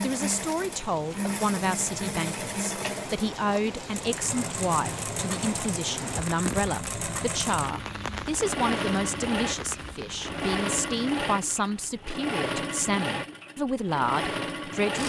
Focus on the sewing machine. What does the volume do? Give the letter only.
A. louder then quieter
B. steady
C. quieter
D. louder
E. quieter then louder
B.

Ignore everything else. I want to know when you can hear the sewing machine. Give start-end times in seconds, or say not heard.
0.0-15.0.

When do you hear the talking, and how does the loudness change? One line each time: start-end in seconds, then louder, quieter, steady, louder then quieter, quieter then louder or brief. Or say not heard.
0.0-15.0 steady.